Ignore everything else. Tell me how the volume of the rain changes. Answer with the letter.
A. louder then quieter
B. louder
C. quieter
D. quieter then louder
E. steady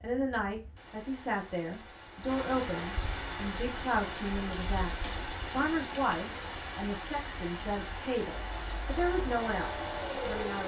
B.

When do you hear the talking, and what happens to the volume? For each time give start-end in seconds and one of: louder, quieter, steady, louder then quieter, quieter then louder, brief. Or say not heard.
0.0-10.6 steady.